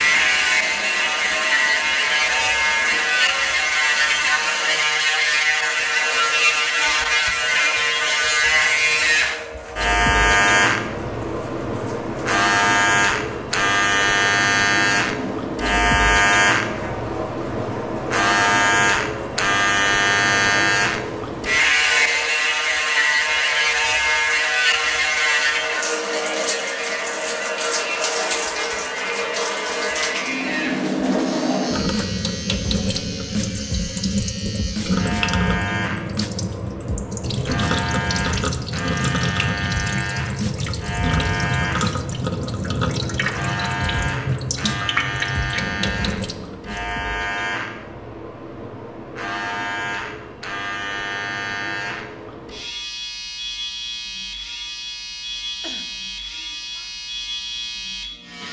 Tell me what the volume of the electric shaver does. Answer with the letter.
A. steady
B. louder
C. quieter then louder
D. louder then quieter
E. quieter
E.